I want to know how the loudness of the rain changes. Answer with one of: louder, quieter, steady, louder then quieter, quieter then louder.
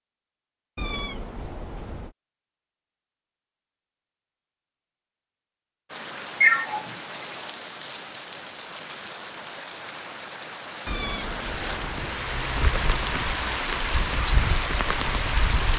louder.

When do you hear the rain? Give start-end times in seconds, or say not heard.
5.8-15.7.